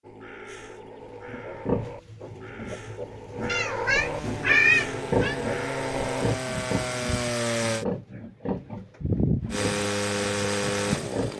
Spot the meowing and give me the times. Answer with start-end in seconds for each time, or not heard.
3.5-5.3.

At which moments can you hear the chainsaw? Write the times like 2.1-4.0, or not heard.
3.9-7.8, 9.5-11.3.